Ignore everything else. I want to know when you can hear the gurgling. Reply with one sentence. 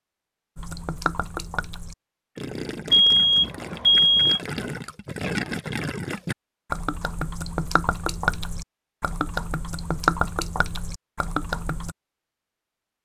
The gurgling can be heard from 0.6 to 11.9 s.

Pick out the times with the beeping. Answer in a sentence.
The beeping can be heard from 2.9 to 4.4 s.